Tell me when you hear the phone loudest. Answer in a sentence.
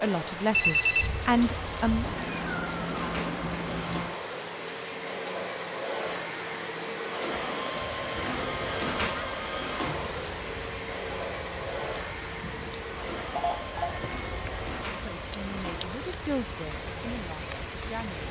The volume of the phone peaks at 1 second.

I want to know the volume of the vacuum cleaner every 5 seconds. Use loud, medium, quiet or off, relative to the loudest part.
medium, loud, loud, medium.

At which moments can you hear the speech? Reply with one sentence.
You can hear the speech from 0.0 to 2.0 s and from 15.0 to 18.2 s.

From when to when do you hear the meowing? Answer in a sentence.
You can hear the meowing from 2.0 to 4.2 s, from 8.2 to 9.2 s and from 13.8 to 14.8 s.